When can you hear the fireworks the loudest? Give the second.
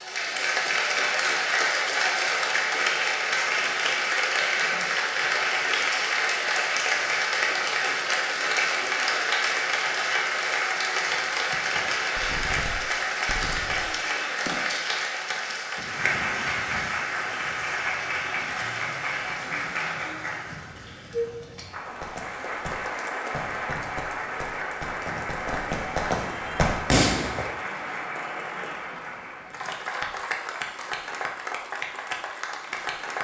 27 s.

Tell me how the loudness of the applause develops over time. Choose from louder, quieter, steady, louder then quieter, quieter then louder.
quieter.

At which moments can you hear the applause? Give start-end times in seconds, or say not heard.
0.0-33.1.